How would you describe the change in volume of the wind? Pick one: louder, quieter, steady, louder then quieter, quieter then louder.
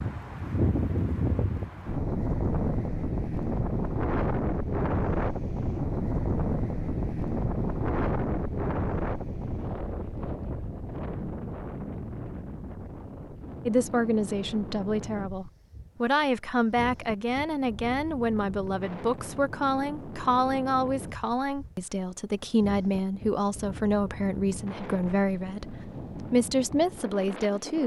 quieter.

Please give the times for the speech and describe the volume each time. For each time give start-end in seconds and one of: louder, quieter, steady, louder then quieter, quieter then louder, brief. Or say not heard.
13.7-27.8 steady.